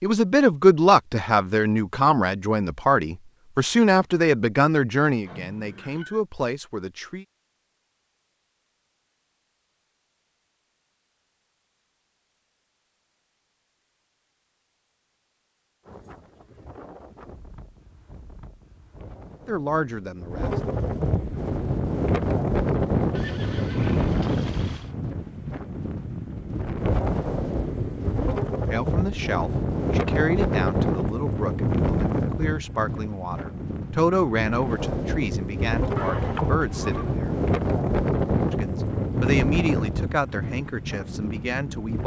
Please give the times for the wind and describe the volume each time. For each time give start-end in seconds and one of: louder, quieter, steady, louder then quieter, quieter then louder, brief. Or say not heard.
15.8-42.0 louder.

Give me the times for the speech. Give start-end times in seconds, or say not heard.
0.0-7.2, 19.4-20.6, 28.6-37.4, 38.5-42.0.